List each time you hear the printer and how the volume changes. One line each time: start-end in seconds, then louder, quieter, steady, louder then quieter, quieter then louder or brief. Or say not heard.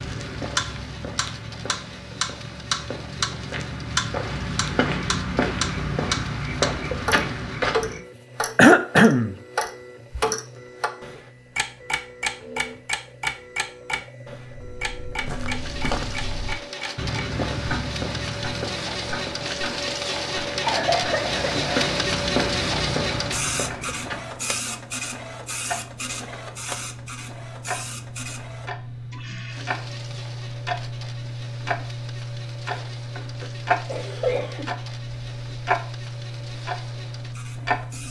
0.0-38.0 louder then quieter.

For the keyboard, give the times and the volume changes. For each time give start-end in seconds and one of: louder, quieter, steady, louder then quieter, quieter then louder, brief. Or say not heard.
not heard.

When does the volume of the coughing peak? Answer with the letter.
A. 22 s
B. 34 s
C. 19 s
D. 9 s
D.